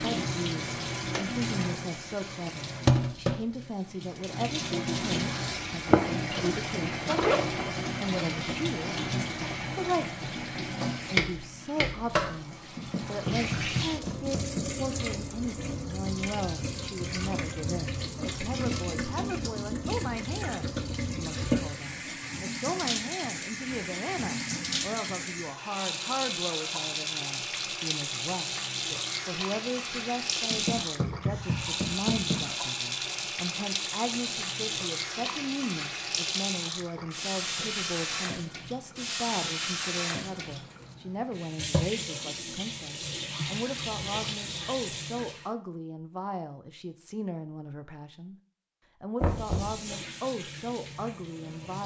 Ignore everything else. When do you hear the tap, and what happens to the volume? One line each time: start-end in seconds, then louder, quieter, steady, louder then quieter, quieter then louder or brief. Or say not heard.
0.0-45.5 steady
49.2-51.8 brief.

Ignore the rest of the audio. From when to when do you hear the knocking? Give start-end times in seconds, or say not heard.
12.8-14.8, 30.5-32.5, 49.2-49.9.